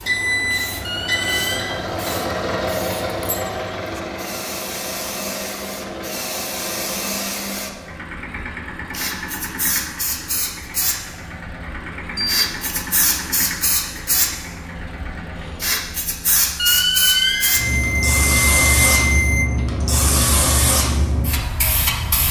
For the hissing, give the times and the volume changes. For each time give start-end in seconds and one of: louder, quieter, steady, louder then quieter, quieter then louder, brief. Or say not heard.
0.0-22.2 louder.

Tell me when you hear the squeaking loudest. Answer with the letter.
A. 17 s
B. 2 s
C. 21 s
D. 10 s
A.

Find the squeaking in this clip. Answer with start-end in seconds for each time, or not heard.
0.8-1.8, 16.6-17.6.